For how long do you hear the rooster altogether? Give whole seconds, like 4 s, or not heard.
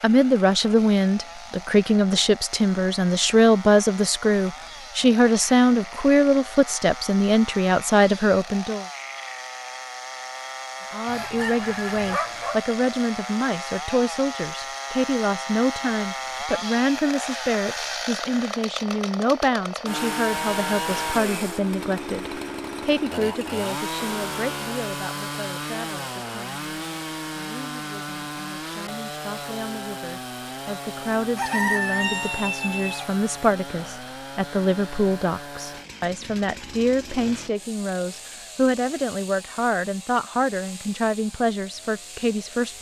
3 s.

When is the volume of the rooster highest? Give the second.
32 s.